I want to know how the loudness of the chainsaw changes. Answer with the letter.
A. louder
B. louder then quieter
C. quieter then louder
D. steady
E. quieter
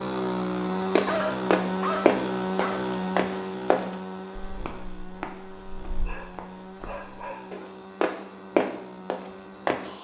E.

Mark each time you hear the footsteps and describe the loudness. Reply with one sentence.
You can hear the footsteps from 0.9 to 9.9 s, getting quieter then louder.